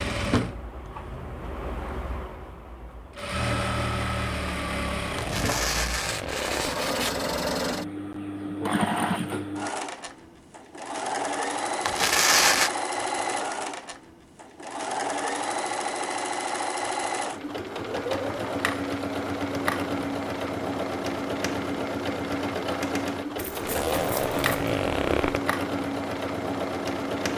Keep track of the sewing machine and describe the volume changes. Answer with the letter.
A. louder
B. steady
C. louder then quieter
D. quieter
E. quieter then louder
B.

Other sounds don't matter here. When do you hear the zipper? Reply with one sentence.
The zipper can be heard from 5.2 to 6.7 s and from 23.6 to 25.4 s.